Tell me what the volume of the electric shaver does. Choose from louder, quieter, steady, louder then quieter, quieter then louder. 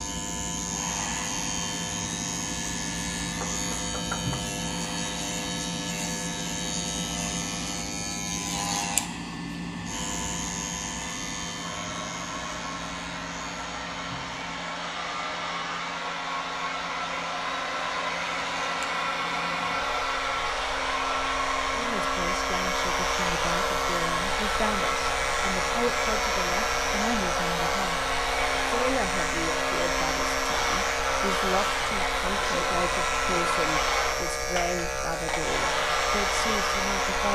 quieter then louder.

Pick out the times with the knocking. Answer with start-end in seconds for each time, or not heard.
3.4-4.4.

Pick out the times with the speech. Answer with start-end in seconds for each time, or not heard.
21.8-37.3.